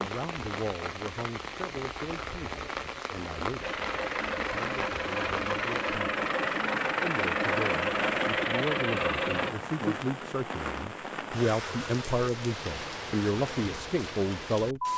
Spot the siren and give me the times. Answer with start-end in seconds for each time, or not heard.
not heard.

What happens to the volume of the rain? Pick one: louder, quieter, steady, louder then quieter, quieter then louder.
steady.